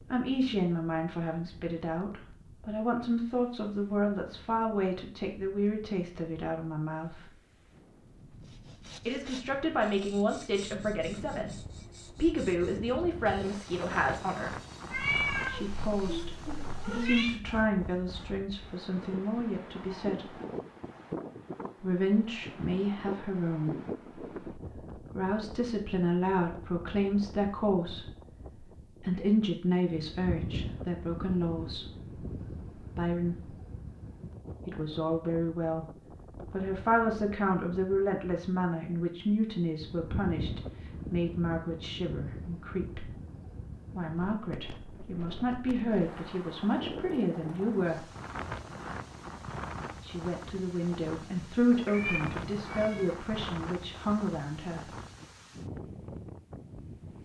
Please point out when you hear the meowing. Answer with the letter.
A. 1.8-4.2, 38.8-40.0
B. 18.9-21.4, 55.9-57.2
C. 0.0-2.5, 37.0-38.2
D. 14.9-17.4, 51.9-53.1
D.